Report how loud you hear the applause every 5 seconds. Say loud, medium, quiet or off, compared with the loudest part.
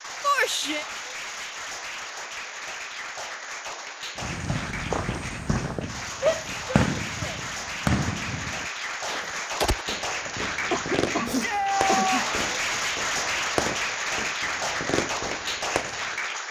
medium, medium, loud, loud.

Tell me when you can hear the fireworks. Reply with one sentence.
The fireworks can be heard from 4.2 to 16.1 s.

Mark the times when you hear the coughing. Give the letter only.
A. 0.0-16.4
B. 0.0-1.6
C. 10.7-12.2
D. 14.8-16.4
C.